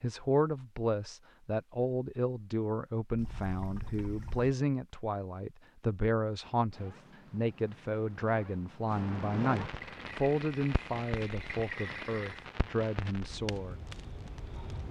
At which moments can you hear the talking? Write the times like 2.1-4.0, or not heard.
0.0-13.8.